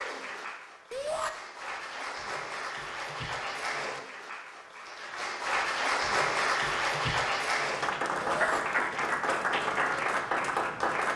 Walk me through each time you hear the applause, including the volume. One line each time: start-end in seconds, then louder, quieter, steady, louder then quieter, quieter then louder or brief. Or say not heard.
0.0-11.1 louder.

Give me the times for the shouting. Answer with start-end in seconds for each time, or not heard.
0.9-1.3, 8.2-8.6.